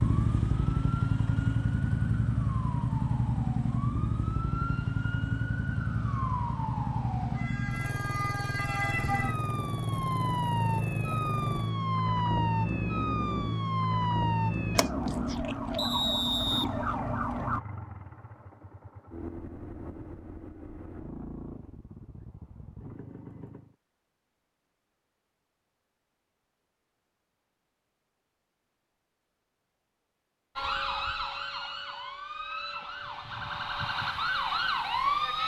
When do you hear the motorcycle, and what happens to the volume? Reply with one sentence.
You can hear the motorcycle from 0.0 to 23.8 s, getting quieter.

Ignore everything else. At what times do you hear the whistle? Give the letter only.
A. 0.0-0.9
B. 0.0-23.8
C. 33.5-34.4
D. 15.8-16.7
D.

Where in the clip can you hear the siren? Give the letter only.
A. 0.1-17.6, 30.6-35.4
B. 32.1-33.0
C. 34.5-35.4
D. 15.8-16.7
A.